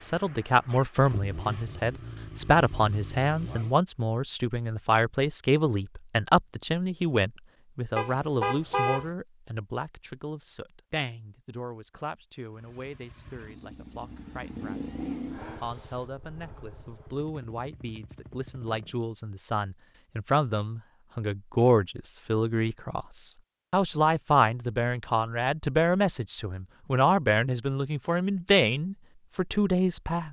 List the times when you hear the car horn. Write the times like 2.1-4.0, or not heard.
8.0-9.1.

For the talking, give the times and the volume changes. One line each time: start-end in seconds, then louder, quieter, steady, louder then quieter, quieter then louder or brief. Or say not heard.
0.0-30.2 quieter then louder.